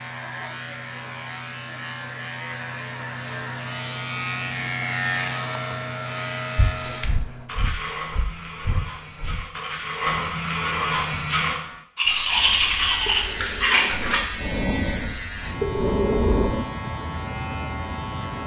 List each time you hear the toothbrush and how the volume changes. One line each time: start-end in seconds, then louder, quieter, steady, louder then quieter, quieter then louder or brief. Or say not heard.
7.5-14.2 louder.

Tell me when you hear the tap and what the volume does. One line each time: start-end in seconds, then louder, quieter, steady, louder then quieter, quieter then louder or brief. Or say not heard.
not heard.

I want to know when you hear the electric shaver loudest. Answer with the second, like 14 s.
5 s.